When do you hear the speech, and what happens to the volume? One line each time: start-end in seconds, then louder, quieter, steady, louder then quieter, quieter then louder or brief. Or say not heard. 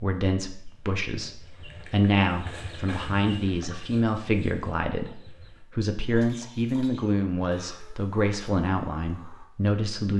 0.0-10.1 steady.